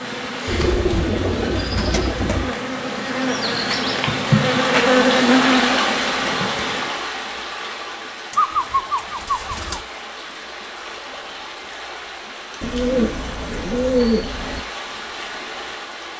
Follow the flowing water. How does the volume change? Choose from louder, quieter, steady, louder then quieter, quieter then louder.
louder then quieter.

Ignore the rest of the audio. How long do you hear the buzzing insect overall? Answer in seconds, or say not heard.
7 s.